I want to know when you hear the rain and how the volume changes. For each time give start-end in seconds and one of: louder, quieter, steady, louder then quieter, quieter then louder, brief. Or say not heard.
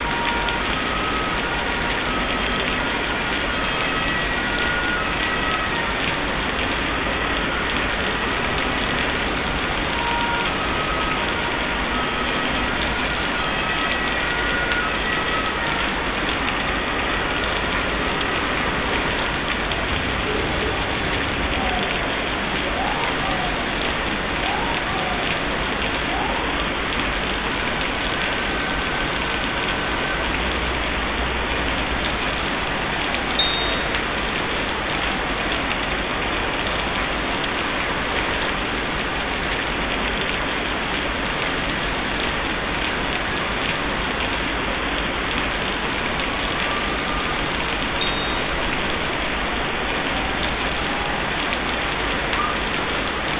0.0-53.3 steady.